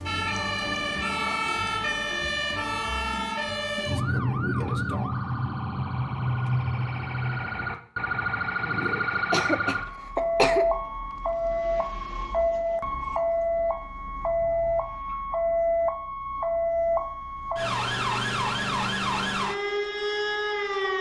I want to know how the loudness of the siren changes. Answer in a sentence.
The loudness of the siren stays about the same.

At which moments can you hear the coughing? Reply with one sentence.
You can hear the coughing from 9.2 to 10.7 s.